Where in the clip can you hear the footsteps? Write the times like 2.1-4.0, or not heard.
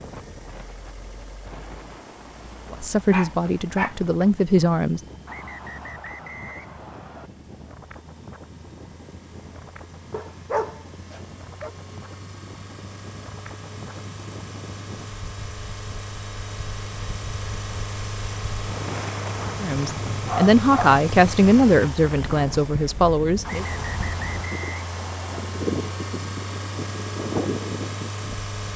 not heard.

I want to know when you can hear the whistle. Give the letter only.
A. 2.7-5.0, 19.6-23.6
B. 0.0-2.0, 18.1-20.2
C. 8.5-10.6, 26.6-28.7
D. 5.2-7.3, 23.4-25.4
D.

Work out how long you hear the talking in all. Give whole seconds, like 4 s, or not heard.
6 s.